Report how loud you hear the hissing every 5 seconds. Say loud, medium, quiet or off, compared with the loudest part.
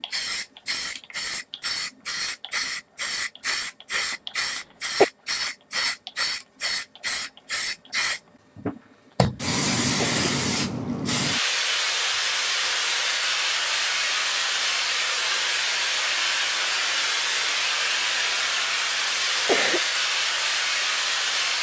medium, loud, loud, loud, loud.